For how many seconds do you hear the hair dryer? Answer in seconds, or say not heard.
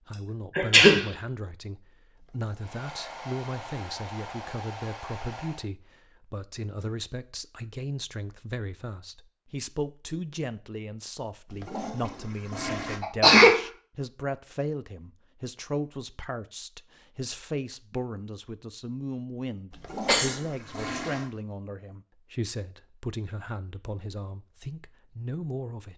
3 s.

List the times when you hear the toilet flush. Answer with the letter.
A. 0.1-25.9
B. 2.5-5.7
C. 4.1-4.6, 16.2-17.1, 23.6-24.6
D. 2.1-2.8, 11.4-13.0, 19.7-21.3
D.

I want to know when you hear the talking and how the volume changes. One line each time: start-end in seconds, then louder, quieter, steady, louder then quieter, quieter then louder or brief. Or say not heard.
0.1-25.9 steady.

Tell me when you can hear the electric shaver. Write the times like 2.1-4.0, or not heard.
not heard.